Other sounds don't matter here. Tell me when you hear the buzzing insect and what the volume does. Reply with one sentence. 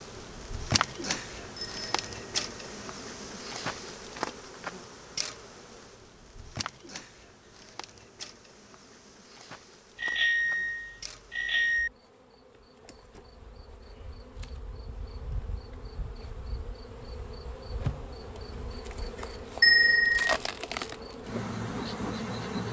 You can hear the buzzing insect from 0.0 to 22.6 s, getting quieter then louder.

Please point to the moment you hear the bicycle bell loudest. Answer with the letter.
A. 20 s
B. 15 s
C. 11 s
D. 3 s
A.